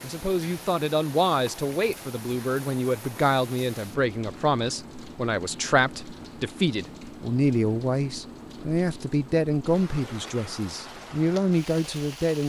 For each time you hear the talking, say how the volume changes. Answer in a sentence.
The talking can be heard from 0.0 to 12.4 s, at a steady volume.